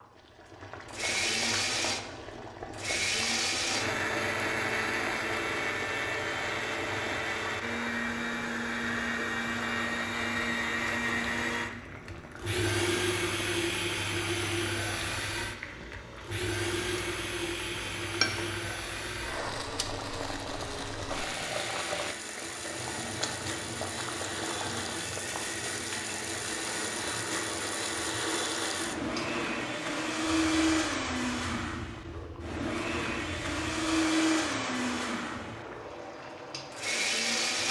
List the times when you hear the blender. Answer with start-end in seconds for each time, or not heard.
0.0-37.6.